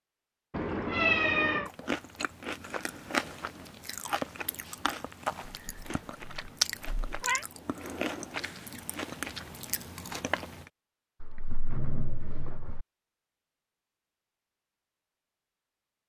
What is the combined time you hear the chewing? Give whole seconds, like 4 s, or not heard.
9 s.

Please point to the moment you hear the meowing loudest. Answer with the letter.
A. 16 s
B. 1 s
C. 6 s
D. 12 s
B.